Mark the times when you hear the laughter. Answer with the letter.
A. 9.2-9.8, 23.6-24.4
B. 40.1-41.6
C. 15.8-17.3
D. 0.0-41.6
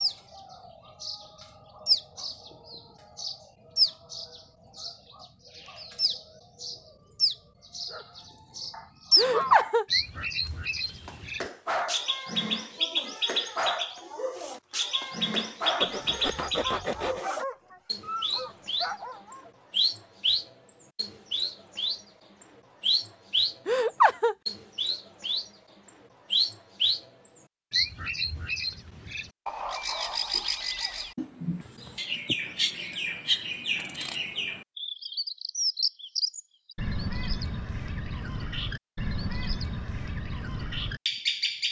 A.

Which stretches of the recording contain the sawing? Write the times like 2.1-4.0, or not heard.
15.8-17.3.